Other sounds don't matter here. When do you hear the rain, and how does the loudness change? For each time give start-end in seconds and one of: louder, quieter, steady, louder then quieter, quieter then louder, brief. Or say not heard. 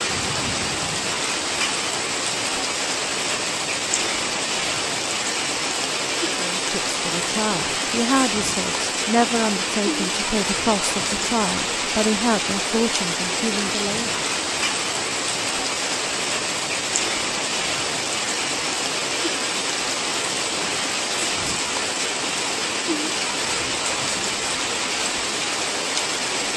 0.0-26.5 steady.